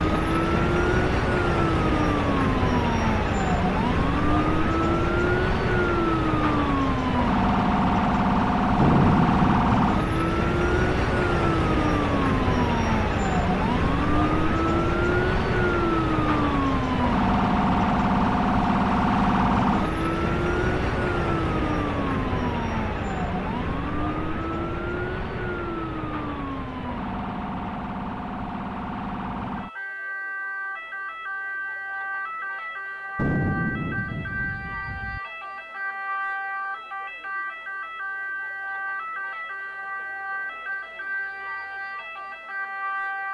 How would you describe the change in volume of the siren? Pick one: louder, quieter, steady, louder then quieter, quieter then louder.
quieter.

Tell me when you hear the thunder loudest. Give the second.
9 s.